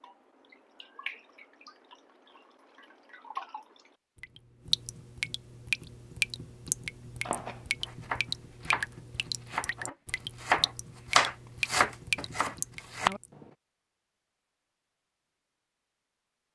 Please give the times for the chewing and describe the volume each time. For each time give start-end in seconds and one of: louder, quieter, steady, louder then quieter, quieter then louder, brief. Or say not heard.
not heard.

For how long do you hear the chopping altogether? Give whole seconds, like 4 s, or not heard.
6 s.